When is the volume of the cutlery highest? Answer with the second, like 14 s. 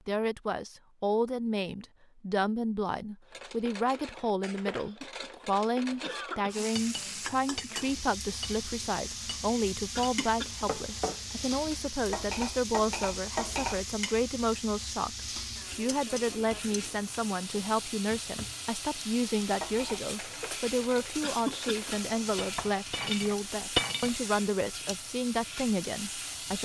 24 s.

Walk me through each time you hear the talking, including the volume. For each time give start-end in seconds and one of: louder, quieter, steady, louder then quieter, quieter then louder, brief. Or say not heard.
0.1-26.6 steady.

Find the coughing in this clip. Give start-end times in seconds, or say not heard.
4.8-6.7, 9.9-10.7, 21.2-21.9.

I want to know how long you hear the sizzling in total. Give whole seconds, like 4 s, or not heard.
20 s.